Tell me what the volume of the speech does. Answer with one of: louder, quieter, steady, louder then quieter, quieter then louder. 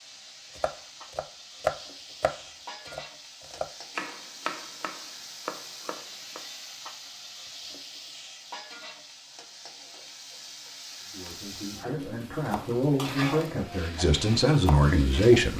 louder.